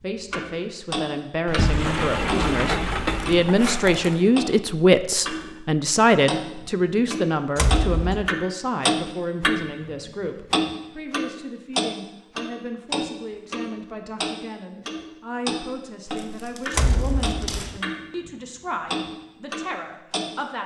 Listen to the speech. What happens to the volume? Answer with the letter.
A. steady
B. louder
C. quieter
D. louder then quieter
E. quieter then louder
C.